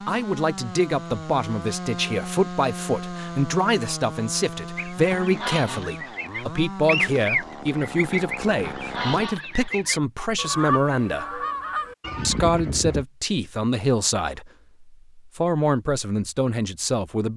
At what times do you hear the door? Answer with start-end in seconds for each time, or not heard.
not heard.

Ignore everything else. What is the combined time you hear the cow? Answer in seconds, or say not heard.
not heard.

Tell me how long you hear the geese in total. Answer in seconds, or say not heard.
8 s.